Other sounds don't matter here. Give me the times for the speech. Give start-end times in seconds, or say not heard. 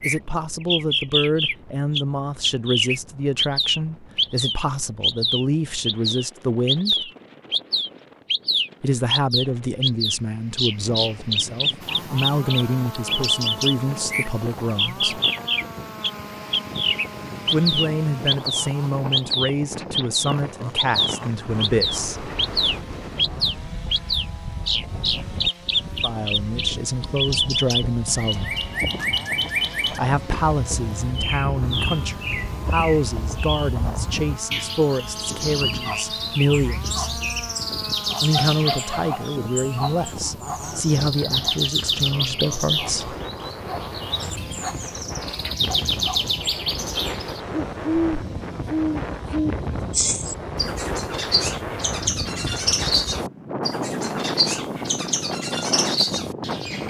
0.0-7.1, 8.8-15.2, 17.4-22.3, 26.0-28.6, 29.9-37.0, 38.2-43.1.